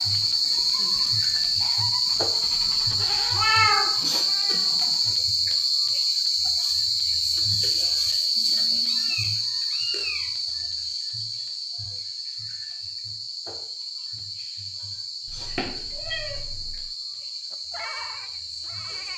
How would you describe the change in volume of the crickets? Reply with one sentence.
The volume of the crickets goes down.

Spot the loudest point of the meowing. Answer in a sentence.
The volume of the meowing peaks at 4 seconds.